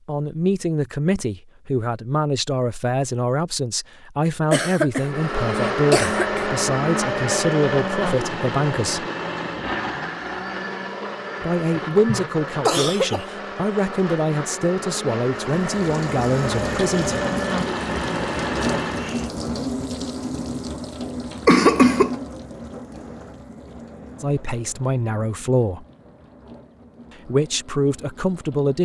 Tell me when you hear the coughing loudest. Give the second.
22 s.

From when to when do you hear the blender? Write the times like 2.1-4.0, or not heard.
4.9-19.3.